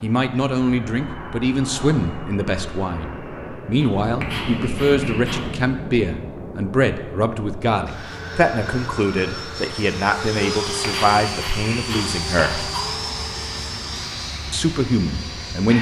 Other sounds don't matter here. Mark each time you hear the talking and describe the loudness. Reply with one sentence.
The talking can be heard from 0.0 to 12.7 s, at a steady volume; and briefly from 14.5 to 15.7 s.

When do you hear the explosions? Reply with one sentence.
You can hear the explosions from 4.1 to 6.7 s.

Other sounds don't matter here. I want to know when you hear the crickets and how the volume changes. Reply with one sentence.
The crickets can't be heard in this clip.